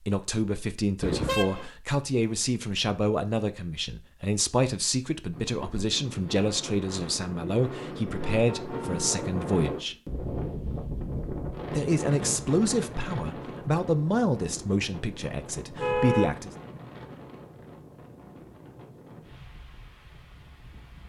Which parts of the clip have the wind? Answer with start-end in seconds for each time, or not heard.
5.3-21.0.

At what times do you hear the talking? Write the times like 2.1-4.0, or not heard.
0.0-9.9, 11.7-16.5.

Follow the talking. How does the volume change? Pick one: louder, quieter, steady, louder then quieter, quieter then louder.
steady.